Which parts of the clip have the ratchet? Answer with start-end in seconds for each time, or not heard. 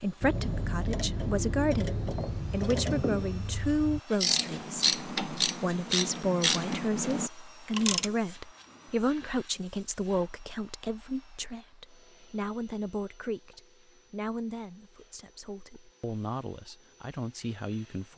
0.2-8.2.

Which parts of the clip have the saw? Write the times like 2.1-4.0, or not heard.
not heard.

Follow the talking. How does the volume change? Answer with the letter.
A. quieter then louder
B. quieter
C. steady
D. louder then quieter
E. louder
B.